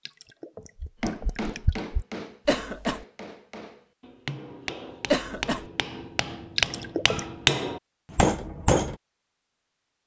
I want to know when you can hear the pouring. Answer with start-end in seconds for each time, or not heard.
0.1-2.0, 6.5-7.2.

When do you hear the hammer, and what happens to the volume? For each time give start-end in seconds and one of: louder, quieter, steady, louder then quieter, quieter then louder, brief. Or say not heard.
1.0-8.9 quieter then louder.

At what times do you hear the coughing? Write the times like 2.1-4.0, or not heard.
2.5-3.0, 5.1-5.7.